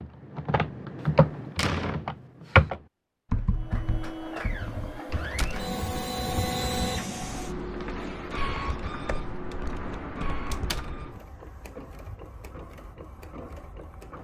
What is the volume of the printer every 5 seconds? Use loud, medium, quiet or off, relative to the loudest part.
medium, loud, medium.